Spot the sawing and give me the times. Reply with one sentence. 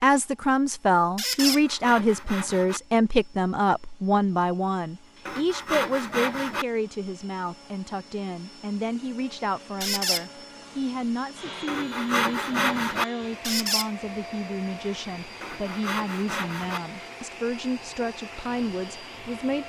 You can hear the sawing from 1.4 to 2.8 s, from 5.2 to 6.7 s, from 11.7 to 13.1 s and from 15.4 to 16.8 s.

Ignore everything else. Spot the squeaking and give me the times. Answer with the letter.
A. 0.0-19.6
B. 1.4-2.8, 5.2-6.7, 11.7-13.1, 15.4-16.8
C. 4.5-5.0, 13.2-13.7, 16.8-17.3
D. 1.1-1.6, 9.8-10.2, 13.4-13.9
D.